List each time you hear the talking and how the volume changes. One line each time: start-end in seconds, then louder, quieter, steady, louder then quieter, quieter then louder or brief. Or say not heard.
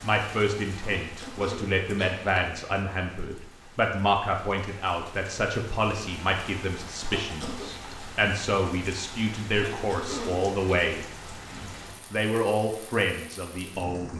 0.0-14.1 steady.